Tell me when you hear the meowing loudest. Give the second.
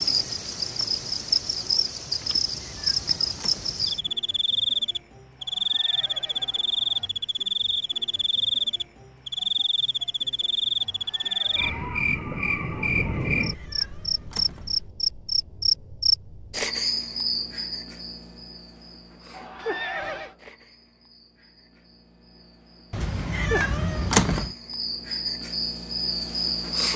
24 s.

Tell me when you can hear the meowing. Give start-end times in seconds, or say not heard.
2.2-4.2, 13.1-14.9, 22.9-24.6.